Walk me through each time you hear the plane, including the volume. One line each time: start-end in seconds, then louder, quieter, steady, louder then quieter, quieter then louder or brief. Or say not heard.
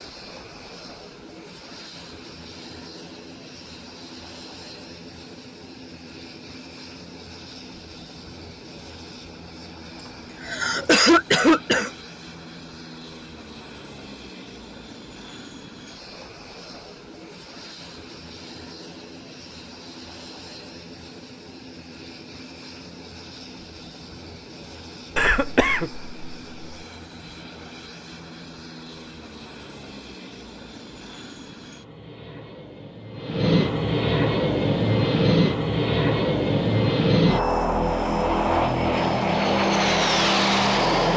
0.0-41.1 louder.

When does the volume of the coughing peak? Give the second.
11 s.